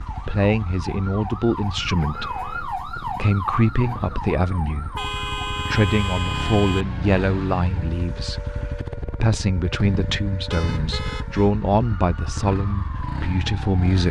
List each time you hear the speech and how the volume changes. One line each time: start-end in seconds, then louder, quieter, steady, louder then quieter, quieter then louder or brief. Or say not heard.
0.1-14.0 steady.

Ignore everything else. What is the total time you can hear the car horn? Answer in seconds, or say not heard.
4 s.